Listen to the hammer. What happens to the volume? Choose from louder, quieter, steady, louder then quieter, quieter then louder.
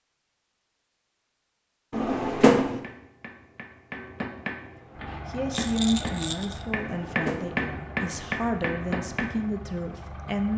louder.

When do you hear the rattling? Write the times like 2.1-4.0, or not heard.
5.5-6.7.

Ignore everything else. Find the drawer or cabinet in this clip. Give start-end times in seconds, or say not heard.
1.9-2.8, 6.8-7.6.